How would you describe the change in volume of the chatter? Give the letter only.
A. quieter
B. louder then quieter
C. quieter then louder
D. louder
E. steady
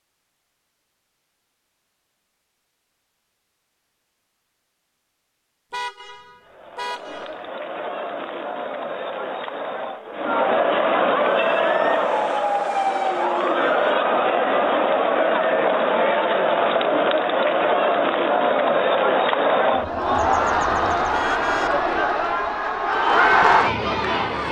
D.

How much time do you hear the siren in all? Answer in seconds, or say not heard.
3 s.